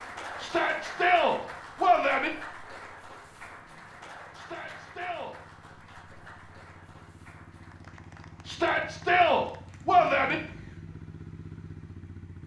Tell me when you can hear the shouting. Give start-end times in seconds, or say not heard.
0.4-2.3, 4.3-5.3, 8.4-10.3.